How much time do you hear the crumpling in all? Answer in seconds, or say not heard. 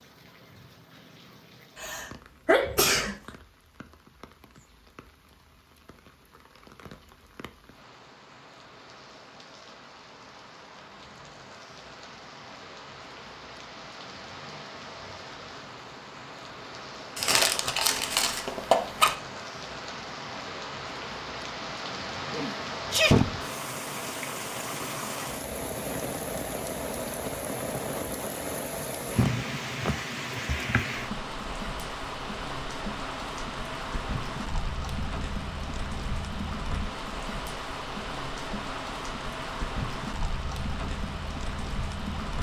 2 s.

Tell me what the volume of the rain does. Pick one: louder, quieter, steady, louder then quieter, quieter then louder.
louder.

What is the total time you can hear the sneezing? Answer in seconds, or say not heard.
4 s.